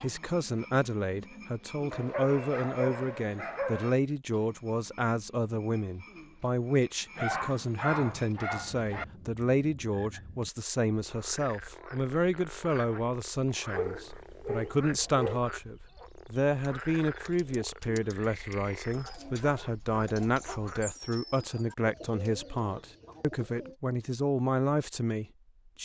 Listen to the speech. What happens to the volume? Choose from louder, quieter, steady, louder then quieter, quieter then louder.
steady.